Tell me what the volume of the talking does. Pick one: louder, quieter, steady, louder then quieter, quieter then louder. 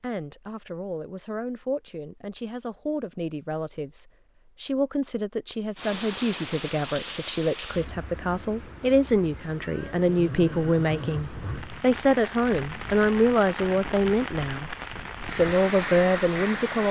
louder.